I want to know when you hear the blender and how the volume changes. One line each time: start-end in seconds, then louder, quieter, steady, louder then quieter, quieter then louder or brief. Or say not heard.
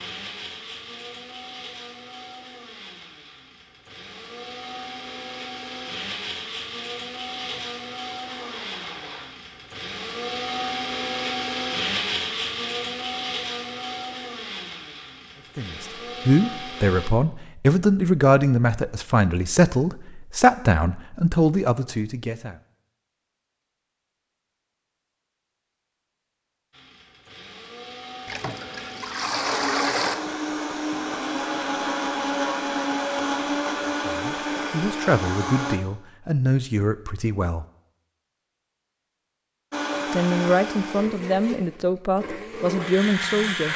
0.0-17.1 louder then quieter
26.7-35.8 louder
39.7-43.7 quieter then louder.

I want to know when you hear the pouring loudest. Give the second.
30 s.